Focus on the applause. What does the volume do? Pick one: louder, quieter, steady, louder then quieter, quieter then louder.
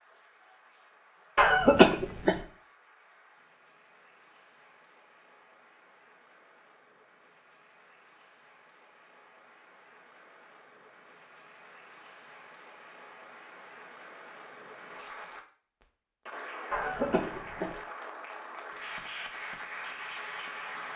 louder.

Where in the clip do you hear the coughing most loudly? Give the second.
2 s.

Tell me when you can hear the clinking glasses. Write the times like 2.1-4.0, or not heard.
not heard.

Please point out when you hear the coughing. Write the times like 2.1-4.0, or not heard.
1.4-2.4, 16.7-17.8.